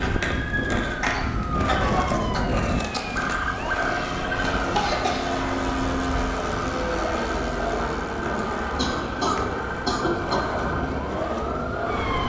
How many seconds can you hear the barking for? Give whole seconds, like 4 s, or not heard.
not heard.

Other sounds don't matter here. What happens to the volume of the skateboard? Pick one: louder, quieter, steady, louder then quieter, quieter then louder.
steady.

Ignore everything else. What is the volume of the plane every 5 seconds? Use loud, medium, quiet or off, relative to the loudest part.
loud, loud, medium.